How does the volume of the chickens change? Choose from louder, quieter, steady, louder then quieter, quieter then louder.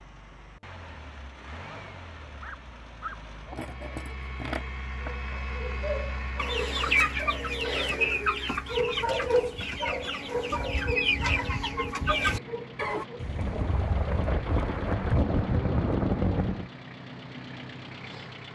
quieter then louder.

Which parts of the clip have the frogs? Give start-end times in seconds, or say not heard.
not heard.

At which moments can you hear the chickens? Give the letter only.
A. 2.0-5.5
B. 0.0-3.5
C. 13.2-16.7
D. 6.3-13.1
D.